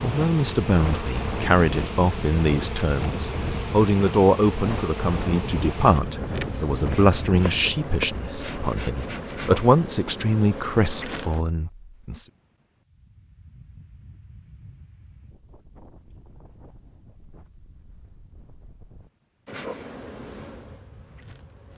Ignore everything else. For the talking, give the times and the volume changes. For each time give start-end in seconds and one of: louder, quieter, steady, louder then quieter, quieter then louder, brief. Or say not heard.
0.0-12.2 steady.